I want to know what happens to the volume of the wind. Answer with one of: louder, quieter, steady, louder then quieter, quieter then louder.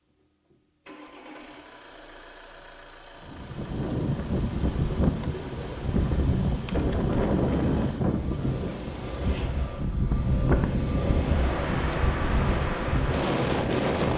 steady.